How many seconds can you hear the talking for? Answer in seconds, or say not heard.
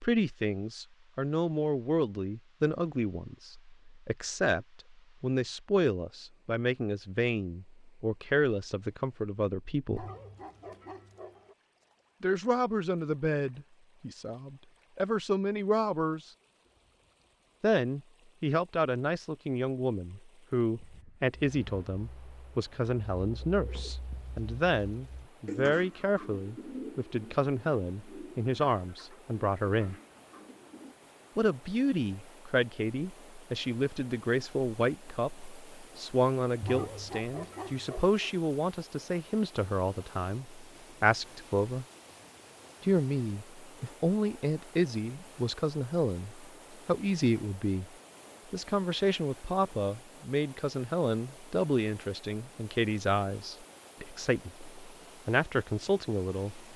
50 s.